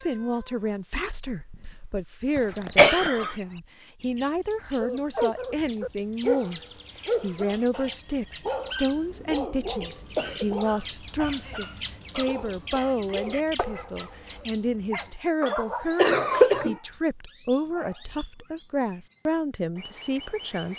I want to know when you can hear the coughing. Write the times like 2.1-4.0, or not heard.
2.4-3.4, 8.9-10.6, 15.9-16.8.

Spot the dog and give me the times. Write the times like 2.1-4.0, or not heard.
4.8-16.6.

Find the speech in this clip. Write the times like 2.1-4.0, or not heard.
0.0-20.7.